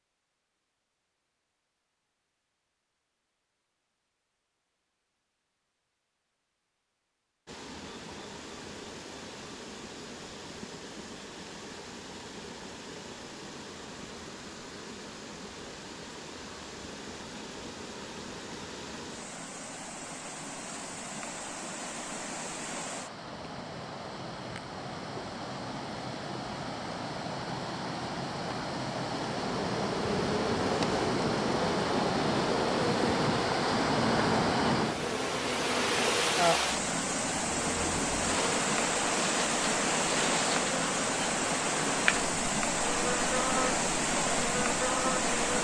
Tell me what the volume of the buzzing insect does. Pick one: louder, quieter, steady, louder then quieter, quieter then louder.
steady.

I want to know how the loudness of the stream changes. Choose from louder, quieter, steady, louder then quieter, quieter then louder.
louder.